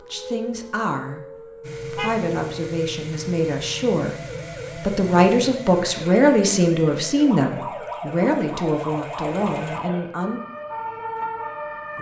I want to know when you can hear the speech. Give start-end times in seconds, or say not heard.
0.0-10.4.